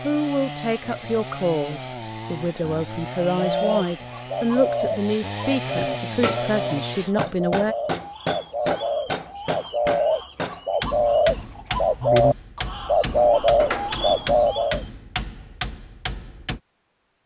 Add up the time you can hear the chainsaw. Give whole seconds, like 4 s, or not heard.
7 s.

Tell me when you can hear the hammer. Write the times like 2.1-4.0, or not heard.
6.0-16.6.